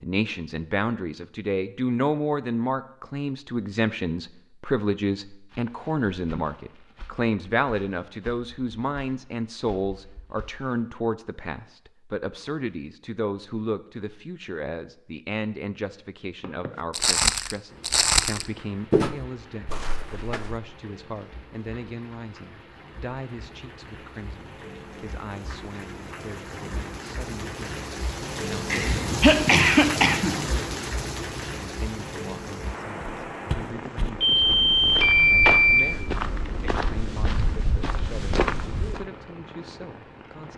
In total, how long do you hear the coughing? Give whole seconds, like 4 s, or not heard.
2 s.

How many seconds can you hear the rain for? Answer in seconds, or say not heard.
23 s.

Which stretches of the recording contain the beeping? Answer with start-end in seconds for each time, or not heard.
34.2-35.8.